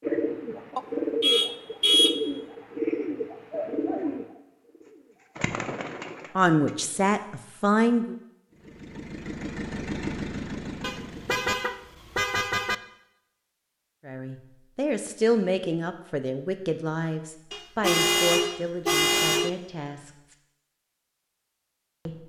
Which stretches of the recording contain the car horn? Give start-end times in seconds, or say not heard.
0.8-2.2, 10.8-12.8, 17.5-19.5.